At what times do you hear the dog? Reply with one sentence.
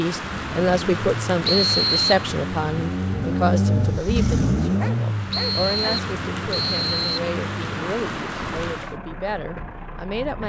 The dog can be heard from 4.8 to 6.0 s.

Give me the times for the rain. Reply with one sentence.
The rain can be heard from 0.0 to 9.0 s.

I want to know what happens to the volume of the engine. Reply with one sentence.
The volume of the engine goes up, then down.